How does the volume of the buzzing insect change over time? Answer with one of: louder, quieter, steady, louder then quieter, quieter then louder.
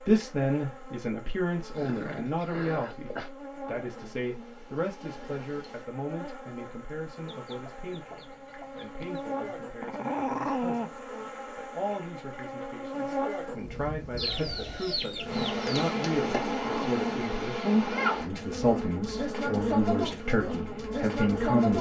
louder.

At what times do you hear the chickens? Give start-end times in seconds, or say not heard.
7.2-9.2, 14.2-16.0.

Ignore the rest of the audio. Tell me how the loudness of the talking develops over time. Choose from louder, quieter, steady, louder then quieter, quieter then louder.
quieter then louder.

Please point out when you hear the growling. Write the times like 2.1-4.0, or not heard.
1.8-3.3, 9.8-11.3, 16.4-18.2.